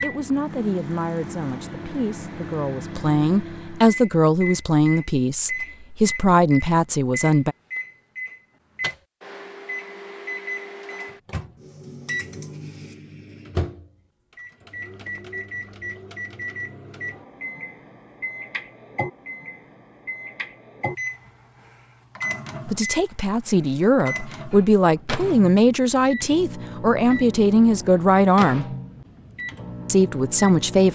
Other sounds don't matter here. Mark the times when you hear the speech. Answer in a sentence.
You can hear the speech from 0.0 to 7.5 s, from 22.6 to 28.6 s and from 29.9 to 30.9 s.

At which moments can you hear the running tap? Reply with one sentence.
The running tap can't be heard in this clip.